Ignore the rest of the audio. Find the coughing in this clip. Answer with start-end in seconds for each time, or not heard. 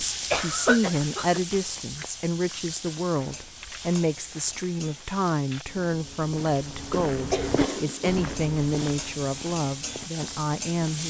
0.3-1.4, 6.9-8.5.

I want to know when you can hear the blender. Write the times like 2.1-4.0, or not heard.
not heard.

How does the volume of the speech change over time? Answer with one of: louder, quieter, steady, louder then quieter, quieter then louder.
steady.